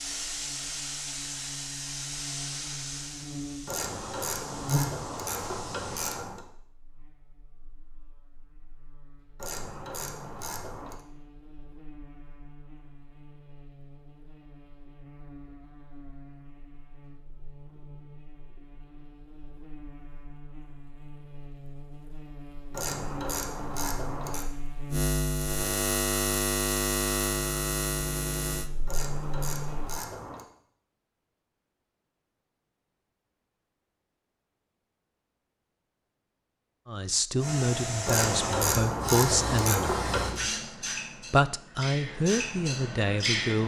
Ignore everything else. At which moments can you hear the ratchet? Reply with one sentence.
The ratchet can be heard from 3.6 to 6.5 s, from 9.3 to 11.0 s, from 22.7 to 24.5 s, from 28.9 to 30.4 s and from 38.0 to 40.4 s.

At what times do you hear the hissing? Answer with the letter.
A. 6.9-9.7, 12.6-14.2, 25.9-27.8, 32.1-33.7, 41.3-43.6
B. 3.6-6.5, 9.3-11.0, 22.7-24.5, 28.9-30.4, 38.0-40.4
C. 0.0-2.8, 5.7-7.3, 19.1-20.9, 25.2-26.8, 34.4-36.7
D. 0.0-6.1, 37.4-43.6
D.